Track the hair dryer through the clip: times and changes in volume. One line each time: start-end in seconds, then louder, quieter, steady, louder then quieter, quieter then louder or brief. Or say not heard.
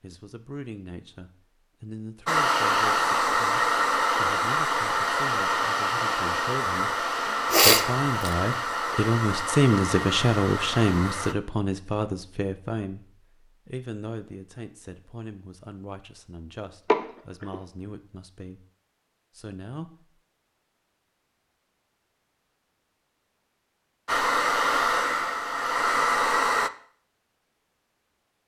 2.2-11.3 quieter
24.1-26.7 brief.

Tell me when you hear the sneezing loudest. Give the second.
8 s.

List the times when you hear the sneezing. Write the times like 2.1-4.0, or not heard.
7.5-8.3, 16.9-17.6.